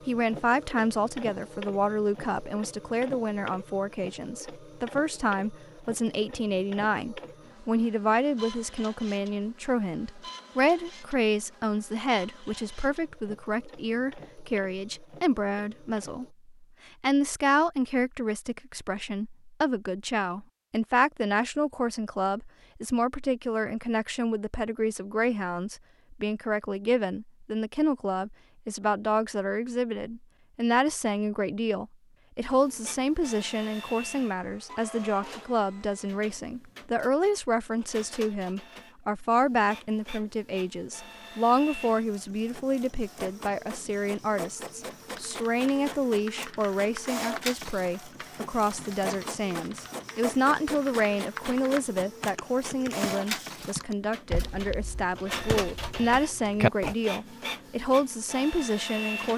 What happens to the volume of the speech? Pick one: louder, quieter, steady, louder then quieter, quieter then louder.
steady.